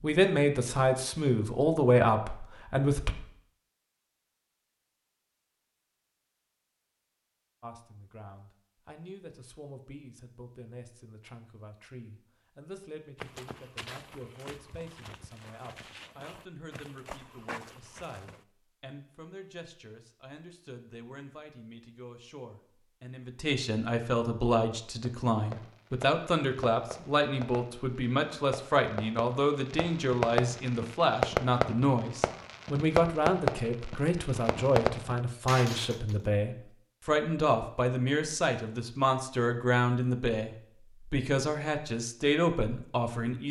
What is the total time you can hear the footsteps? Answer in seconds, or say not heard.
5 s.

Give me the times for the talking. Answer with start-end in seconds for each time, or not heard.
0.0-3.1, 7.6-43.4.